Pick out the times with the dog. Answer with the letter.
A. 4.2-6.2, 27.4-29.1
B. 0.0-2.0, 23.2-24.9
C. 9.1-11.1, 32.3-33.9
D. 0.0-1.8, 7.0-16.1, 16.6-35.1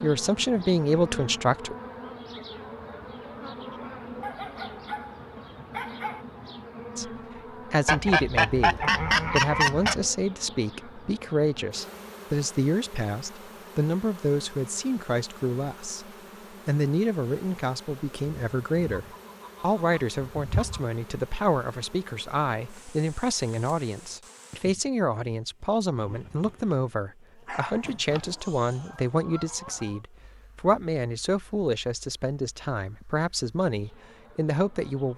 A.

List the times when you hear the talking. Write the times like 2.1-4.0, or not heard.
0.0-1.8, 7.0-16.1, 16.6-35.1.